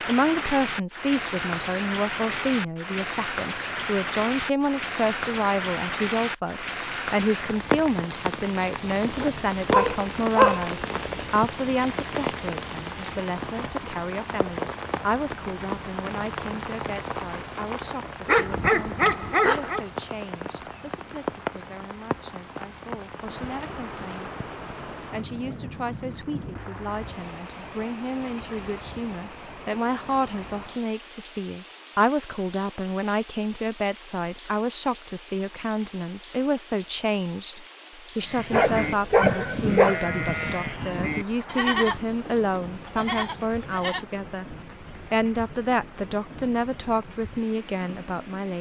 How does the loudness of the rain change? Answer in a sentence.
The volume of the rain goes down.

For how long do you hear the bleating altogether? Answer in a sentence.
The bleating can be heard for 6 seconds in total.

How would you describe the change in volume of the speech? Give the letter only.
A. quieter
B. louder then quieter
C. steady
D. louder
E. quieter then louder
E.